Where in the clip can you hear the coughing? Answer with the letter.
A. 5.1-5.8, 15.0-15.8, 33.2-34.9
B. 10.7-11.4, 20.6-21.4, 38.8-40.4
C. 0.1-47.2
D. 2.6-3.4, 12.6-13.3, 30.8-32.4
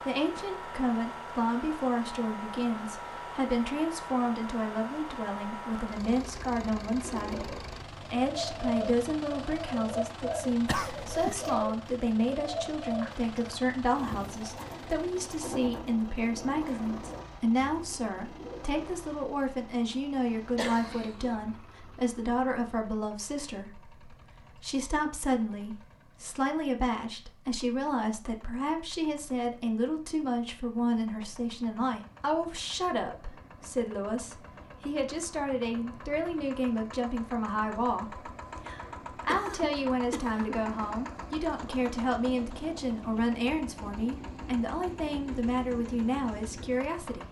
B.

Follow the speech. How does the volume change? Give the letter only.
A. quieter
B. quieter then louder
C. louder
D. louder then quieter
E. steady
E.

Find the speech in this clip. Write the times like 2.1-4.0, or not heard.
0.1-47.2.